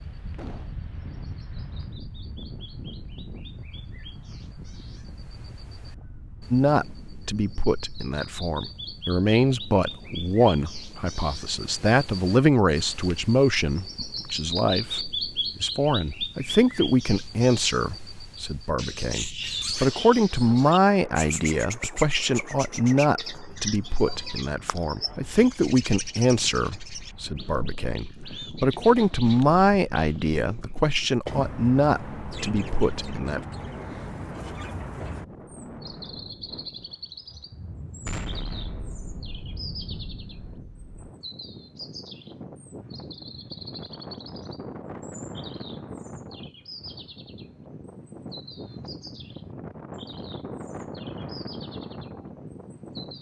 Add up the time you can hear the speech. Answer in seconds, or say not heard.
27 s.